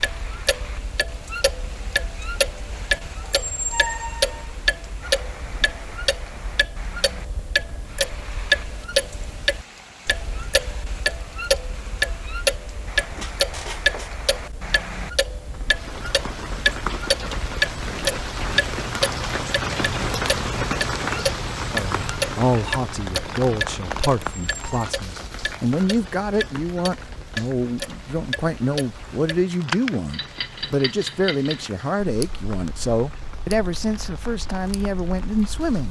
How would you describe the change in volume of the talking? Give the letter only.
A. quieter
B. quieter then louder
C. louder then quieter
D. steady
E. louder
D.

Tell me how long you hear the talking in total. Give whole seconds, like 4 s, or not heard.
14 s.